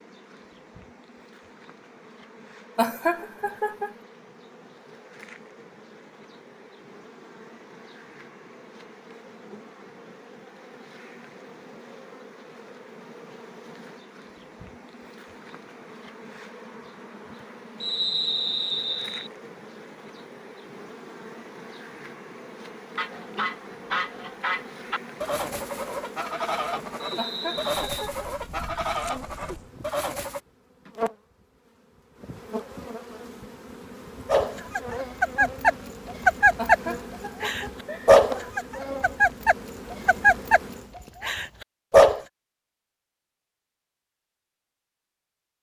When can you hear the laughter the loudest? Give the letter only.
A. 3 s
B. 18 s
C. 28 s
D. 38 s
A.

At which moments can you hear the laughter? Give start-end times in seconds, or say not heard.
2.8-4.0, 27.1-28.3, 36.5-38.2.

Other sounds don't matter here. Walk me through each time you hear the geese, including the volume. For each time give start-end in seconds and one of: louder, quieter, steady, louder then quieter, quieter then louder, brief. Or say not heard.
22.9-30.4 steady.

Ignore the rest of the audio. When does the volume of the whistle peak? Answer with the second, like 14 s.
18 s.